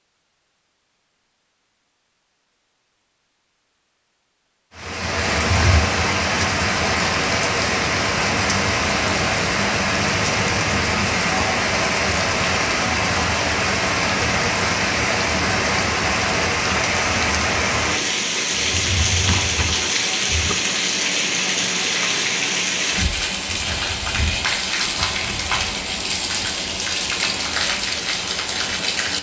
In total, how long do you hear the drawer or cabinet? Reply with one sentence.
The drawer or cabinet can be heard for 2 seconds in total.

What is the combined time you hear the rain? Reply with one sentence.
The rain can be heard for 24 seconds in total.